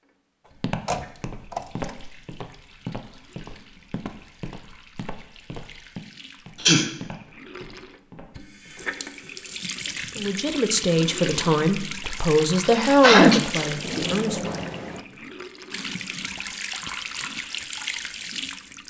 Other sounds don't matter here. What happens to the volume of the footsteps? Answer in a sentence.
The volume of the footsteps goes down.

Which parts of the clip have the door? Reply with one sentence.
You can hear the door from 0.8 to 1.9 s and from 13.5 to 15.1 s.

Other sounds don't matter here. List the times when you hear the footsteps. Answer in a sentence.
The footsteps can be heard from 0.6 to 9.3 s.